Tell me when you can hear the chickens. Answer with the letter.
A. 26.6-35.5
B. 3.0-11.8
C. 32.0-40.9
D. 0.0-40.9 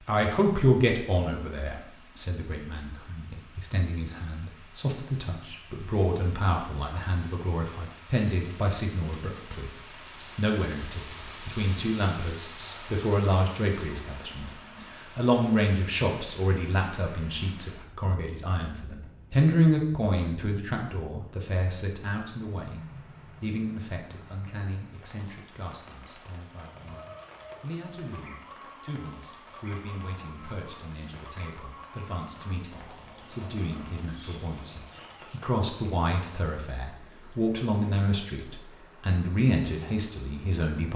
A.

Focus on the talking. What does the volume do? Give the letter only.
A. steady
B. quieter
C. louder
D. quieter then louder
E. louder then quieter
D.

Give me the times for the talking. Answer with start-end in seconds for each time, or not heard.
0.0-40.9.